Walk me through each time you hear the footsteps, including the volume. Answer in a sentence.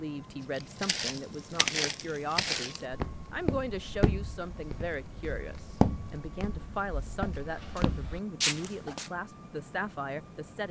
The footsteps can be heard from 0.6 to 9.1 s, getting quieter then louder.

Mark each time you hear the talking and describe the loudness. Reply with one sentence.
The talking can be heard from 0.0 to 10.6 s, at a steady volume.